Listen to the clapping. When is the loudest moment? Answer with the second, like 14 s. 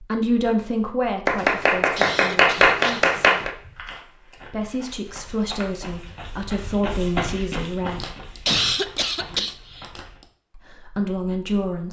3 s.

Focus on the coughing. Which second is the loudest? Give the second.
9 s.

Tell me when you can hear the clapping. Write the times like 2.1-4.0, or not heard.
1.2-3.5, 8.0-10.2.